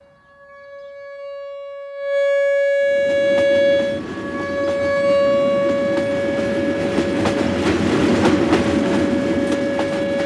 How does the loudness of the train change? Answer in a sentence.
The loudness of the train goes up.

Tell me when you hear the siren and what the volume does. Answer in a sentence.
You can hear the siren from 0.0 to 10.2 s, getting louder then quieter.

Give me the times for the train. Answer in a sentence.
You can hear the train from 2.8 to 10.2 s.